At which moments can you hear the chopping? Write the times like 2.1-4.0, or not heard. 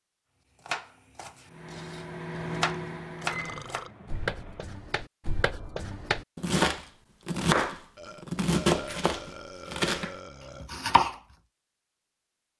0.7-11.2.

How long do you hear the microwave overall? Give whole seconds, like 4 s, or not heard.
3 s.